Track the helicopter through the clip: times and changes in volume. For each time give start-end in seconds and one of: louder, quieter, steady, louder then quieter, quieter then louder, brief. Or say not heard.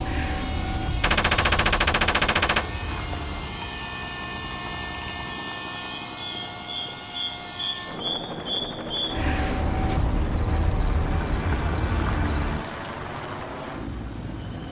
0.0-14.6 steady.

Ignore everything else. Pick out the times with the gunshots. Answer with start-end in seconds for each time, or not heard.
1.0-2.6.